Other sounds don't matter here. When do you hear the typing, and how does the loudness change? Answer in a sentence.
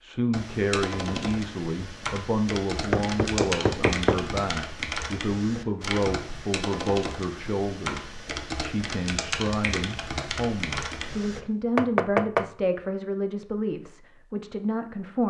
The typing can be heard from 0.3 to 11.4 s, at a steady volume.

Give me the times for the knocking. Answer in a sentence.
You can hear the knocking from 2.9 to 4.2 s and from 11.8 to 12.5 s.